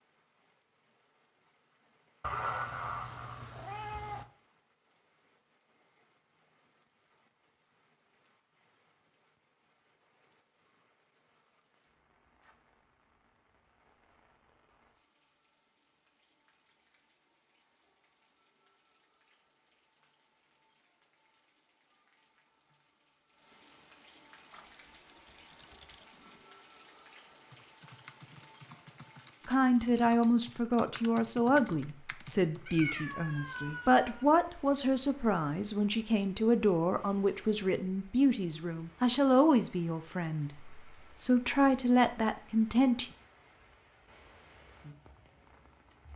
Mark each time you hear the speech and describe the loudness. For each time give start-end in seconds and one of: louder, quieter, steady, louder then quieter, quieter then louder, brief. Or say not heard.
29.4-43.1 steady.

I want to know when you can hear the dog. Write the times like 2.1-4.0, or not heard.
not heard.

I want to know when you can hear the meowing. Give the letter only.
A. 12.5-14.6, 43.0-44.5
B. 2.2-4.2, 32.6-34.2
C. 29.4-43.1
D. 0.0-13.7
B.